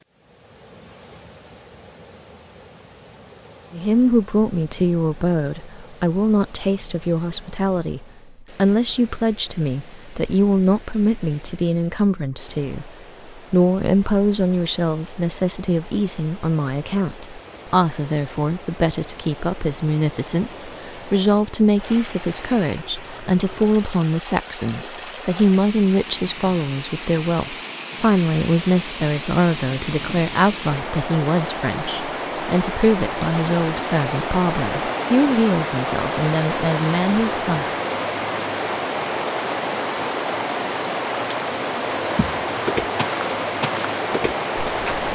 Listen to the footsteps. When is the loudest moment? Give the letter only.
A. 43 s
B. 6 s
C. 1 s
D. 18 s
A.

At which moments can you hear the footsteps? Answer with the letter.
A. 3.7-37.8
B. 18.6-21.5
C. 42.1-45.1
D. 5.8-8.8
C.